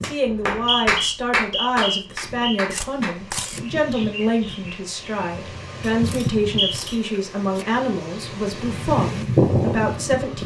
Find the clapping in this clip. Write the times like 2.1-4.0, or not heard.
0.0-3.2.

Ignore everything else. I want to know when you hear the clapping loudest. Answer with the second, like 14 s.
1 s.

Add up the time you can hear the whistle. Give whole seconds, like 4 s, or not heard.
3 s.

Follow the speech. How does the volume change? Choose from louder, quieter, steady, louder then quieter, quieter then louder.
steady.